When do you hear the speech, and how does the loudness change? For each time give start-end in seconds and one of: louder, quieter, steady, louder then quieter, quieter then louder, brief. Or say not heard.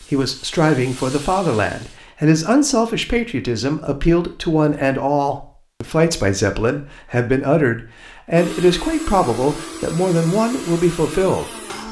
0.0-11.8 steady.